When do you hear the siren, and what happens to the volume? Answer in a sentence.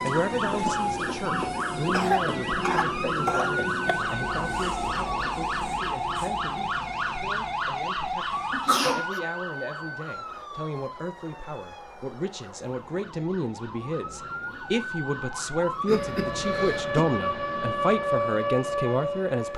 You can hear the siren from 0.0 to 19.5 s, getting quieter then louder.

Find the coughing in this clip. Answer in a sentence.
You can hear the coughing from 1.9 to 4.0 s, from 8.5 to 9.2 s and from 15.8 to 17.1 s.